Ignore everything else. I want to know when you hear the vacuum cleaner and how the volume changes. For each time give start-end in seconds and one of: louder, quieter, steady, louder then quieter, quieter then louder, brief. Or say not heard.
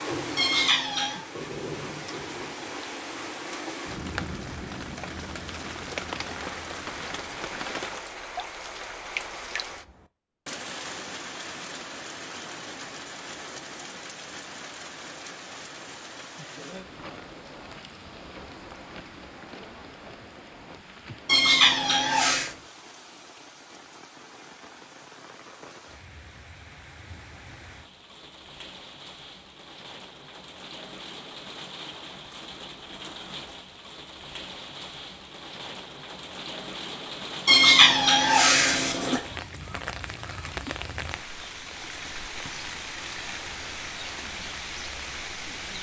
not heard.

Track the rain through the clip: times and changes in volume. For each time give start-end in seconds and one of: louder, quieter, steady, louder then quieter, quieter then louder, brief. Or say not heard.
0.0-45.7 quieter then louder.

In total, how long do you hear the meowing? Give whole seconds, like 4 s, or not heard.
4 s.